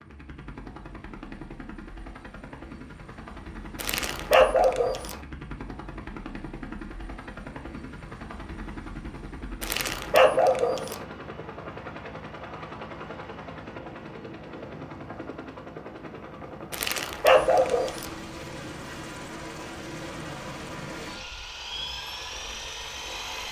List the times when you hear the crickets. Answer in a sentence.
You can't hear the crickets here.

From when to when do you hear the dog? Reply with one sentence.
The dog can be heard from 3.8 to 5.2 s, from 9.6 to 11.0 s and from 16.7 to 18.1 s.